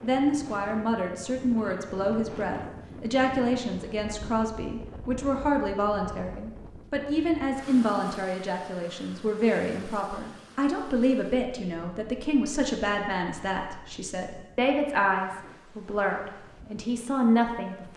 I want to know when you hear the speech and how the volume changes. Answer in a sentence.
You can hear the speech from 0.0 to 17.9 s, at a steady volume.